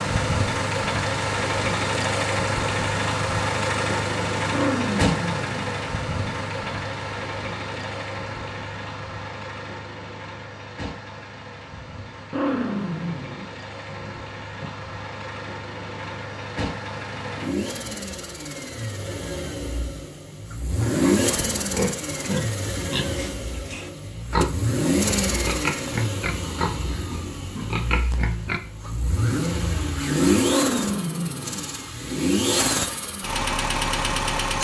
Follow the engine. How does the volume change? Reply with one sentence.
The loudness of the engine goes down, then up.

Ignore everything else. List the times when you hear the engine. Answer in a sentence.
The engine can be heard from 0.0 to 34.5 s.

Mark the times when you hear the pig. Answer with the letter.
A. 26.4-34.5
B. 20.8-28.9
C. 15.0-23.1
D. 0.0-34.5
B.